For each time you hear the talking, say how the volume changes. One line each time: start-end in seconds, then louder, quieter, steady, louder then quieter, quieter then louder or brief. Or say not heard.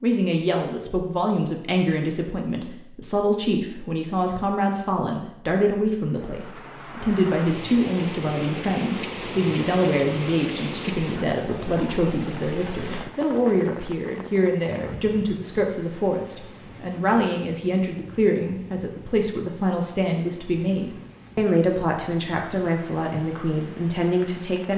0.0-24.7 steady.